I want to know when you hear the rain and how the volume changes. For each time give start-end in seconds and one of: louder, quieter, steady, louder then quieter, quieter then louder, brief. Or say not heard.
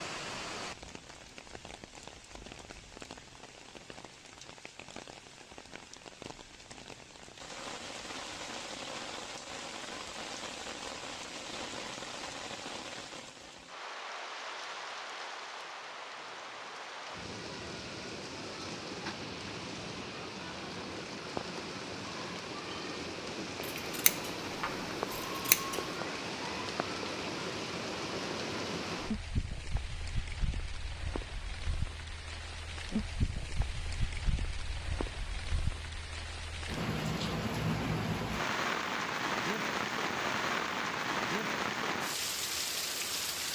0.0-43.5 louder.